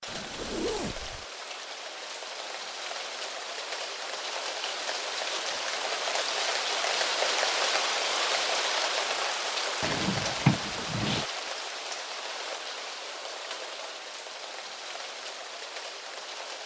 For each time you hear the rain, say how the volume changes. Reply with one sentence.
The rain can be heard from 0.0 to 16.6 s, getting louder then quieter.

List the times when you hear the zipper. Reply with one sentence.
You can hear the zipper from 0.1 to 1.2 s.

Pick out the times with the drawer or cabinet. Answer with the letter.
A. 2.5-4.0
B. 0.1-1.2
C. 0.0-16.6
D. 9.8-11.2
D.